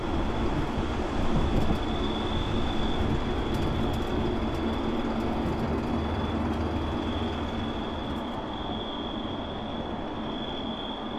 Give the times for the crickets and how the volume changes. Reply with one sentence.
The crickets can be heard from 0.0 to 11.1 s, at a steady volume.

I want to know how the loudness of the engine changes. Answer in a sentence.
The loudness of the engine stays about the same.